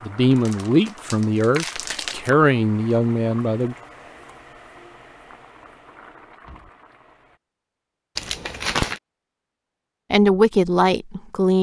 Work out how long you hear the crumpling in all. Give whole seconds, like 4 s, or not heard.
3 s.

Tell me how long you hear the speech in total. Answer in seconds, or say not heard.
5 s.